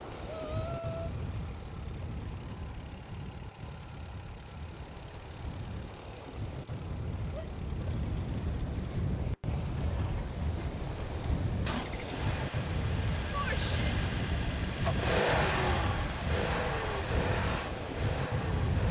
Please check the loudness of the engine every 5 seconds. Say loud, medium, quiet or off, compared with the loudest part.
quiet, quiet, medium, loud.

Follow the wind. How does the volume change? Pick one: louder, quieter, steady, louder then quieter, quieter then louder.
louder.